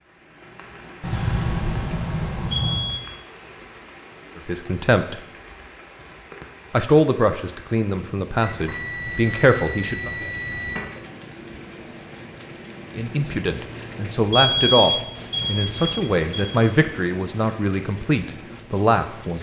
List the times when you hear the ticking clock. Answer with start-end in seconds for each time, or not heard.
not heard.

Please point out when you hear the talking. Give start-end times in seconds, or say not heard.
4.3-5.2, 6.7-10.1, 12.9-19.3.